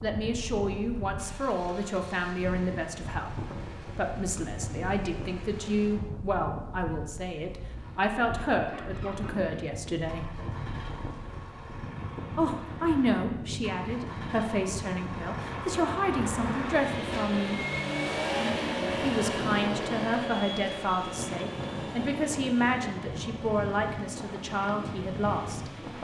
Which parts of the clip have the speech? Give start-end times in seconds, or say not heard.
0.0-10.3, 12.3-17.6, 19.0-25.9.